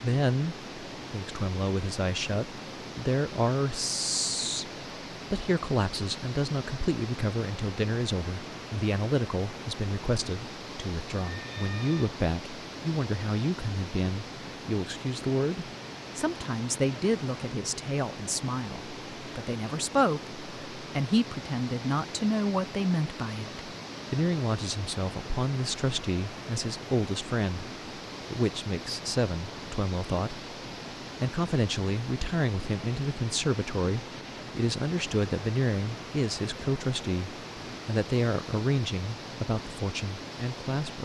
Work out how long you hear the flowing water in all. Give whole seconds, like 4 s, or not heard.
41 s.